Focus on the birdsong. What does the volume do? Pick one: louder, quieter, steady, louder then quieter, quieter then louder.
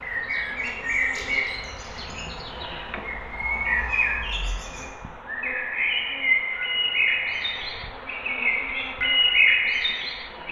louder.